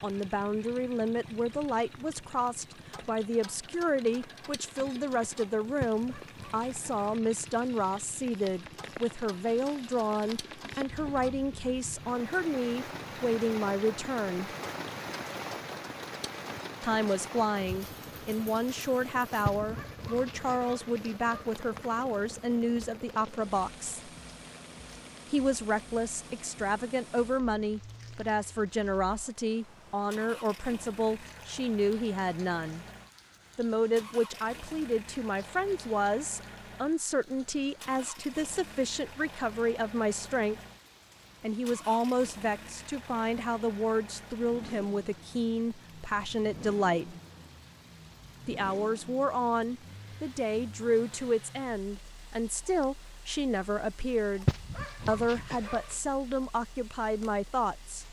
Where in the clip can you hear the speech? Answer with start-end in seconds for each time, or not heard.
0.0-14.5, 16.8-24.1, 25.3-32.9, 33.5-40.5, 41.4-47.1, 48.5-58.0.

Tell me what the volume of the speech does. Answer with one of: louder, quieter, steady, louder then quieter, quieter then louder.
steady.